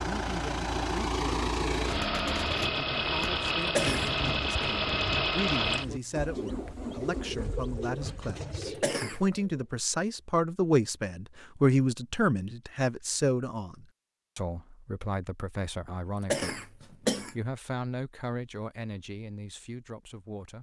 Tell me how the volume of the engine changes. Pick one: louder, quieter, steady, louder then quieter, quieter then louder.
quieter.